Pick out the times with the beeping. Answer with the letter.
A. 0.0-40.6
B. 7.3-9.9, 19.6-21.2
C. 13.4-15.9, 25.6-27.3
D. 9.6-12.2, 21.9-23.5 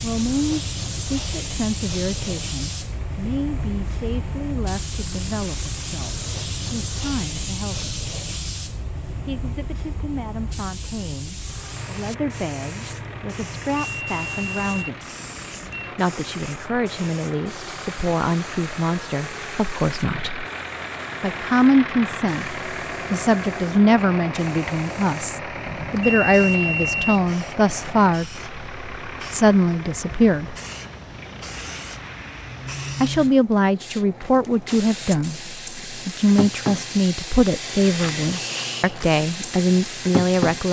C.